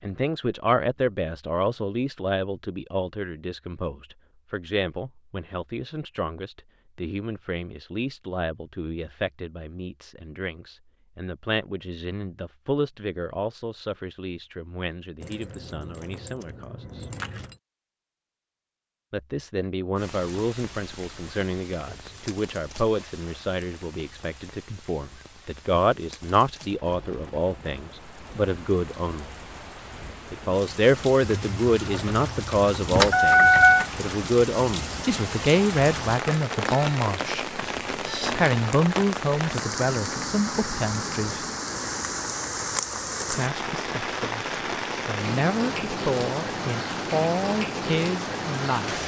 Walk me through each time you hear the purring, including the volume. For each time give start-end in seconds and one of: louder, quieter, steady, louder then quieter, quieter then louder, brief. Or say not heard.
not heard.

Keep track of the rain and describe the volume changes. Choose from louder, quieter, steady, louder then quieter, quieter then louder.
louder.